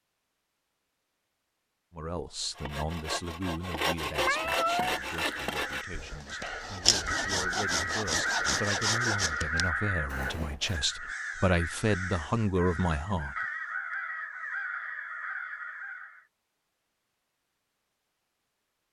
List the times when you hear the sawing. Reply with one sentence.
The sawing can be heard from 2.4 to 10.8 s.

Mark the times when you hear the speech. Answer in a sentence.
You can hear the speech from 1.9 to 13.3 s.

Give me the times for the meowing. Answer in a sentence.
The meowing can be heard from 4.2 to 5.0 s.